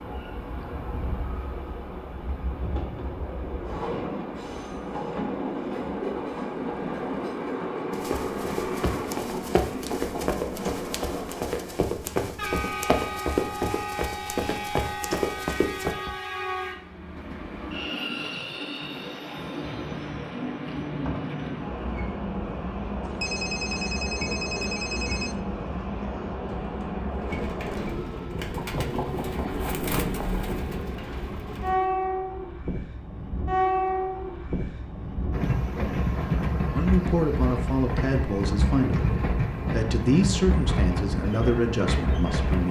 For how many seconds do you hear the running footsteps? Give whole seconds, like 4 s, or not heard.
8 s.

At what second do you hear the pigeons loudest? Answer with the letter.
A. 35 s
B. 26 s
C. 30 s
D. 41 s
C.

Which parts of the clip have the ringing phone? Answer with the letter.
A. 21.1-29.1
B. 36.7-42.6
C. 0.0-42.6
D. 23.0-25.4
D.